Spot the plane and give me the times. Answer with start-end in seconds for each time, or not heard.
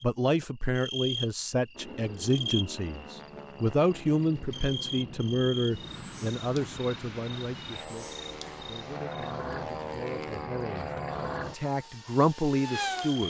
1.7-13.2.